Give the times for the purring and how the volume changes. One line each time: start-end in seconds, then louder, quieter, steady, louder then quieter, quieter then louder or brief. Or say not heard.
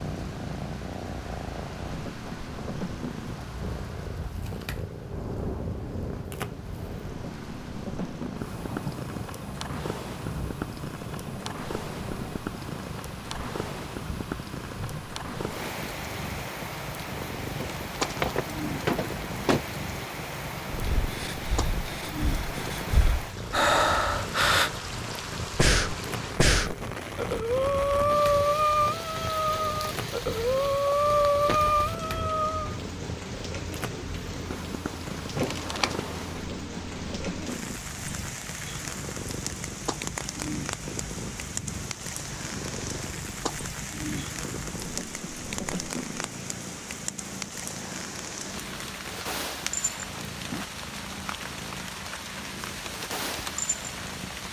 0.0-54.4 steady.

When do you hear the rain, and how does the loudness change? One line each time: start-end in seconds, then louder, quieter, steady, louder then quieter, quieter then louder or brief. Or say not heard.
0.0-54.4 steady.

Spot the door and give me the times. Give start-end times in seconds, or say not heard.
17.6-19.6, 35.4-36.0.